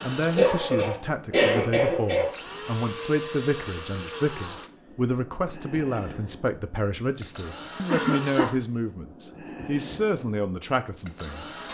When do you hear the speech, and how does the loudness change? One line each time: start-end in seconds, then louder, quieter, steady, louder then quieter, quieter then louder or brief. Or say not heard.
0.0-11.4 steady.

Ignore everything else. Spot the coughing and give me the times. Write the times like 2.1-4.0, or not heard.
0.3-2.3, 7.9-8.6.